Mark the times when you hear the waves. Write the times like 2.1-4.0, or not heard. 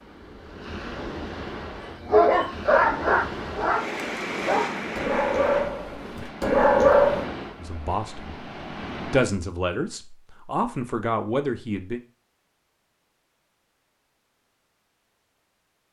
0.0-9.3.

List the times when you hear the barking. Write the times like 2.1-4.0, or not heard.
2.0-7.2.